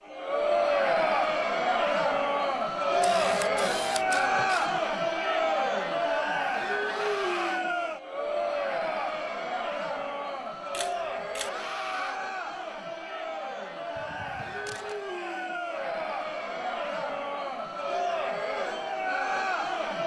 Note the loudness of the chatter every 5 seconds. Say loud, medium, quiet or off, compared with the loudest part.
loud, loud, medium, medium.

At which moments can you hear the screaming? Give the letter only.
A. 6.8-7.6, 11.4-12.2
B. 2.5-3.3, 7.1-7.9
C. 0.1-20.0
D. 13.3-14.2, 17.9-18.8
A.